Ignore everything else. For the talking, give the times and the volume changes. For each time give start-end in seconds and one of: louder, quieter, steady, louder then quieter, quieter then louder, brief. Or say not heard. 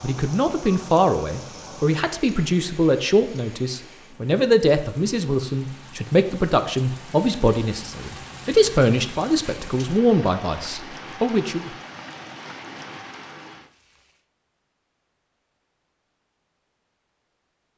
0.0-11.7 steady.